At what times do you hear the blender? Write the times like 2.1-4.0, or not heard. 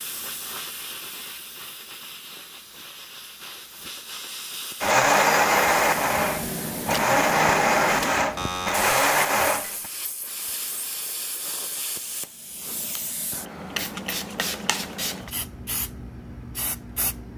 4.8-9.9.